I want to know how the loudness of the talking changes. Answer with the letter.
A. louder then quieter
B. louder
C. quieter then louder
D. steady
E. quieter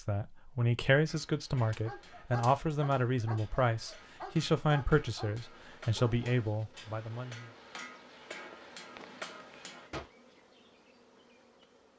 D.